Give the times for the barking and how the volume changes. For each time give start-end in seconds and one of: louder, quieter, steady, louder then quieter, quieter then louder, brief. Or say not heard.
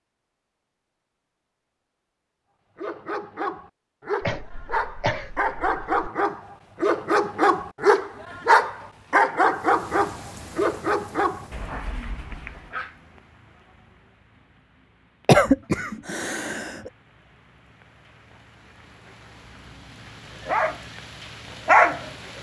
2.8-12.9 louder then quieter
20.4-21.0 brief
21.6-22.1 brief.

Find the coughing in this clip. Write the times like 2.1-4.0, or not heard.
4.2-6.1, 15.2-16.9.